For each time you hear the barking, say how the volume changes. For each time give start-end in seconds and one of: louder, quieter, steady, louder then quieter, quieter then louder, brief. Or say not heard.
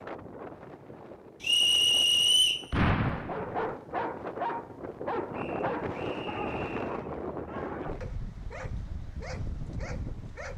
3.2-10.5 quieter.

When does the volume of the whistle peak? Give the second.
2 s.